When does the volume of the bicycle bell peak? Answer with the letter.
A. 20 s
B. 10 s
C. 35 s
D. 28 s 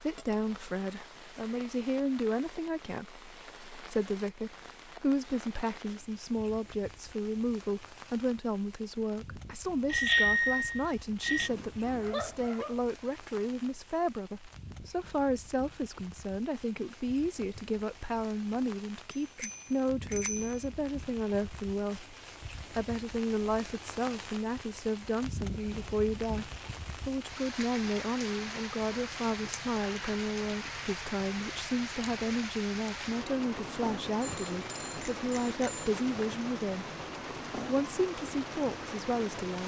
B.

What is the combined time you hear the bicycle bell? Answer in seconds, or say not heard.
5 s.